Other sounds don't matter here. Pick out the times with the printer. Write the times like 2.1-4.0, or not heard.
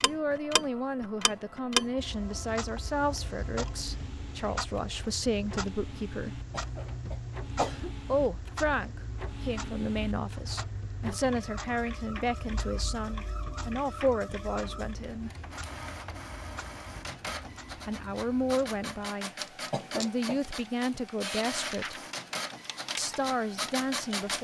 0.0-24.3.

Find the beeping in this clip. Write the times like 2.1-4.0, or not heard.
not heard.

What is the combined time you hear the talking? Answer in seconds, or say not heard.
19 s.